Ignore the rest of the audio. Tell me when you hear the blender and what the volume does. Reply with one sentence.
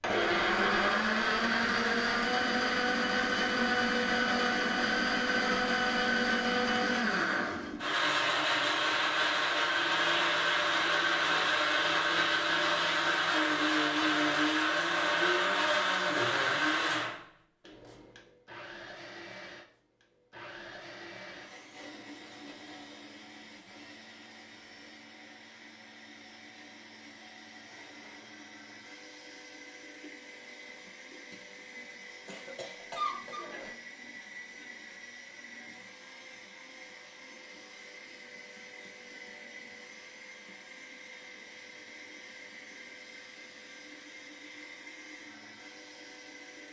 The blender can be heard from 0.0 to 46.6 s, getting quieter.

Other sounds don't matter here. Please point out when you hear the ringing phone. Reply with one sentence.
You can't hear the ringing phone here.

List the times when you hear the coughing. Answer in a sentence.
You can hear the coughing from 32.2 to 33.8 s.